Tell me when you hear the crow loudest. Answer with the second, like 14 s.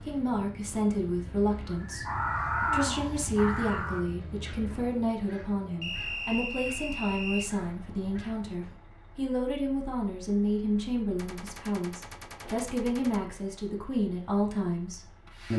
3 s.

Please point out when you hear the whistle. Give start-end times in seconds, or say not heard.
5.8-7.5.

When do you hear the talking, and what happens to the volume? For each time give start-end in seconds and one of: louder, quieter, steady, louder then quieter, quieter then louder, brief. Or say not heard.
0.0-15.5 steady.